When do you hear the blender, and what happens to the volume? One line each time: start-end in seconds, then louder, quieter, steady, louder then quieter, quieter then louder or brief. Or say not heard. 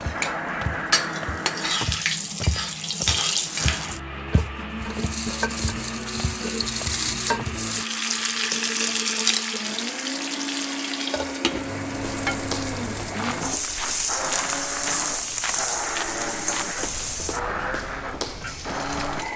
0.0-1.9 brief
3.5-19.3 steady.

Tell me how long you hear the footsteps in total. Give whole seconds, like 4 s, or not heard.
15 s.